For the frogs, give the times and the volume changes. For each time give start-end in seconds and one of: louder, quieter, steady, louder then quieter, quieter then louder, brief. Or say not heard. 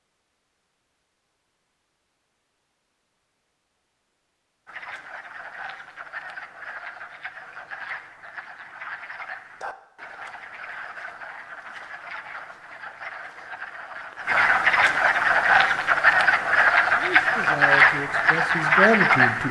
4.7-19.4 louder.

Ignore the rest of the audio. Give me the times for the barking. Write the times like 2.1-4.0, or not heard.
not heard.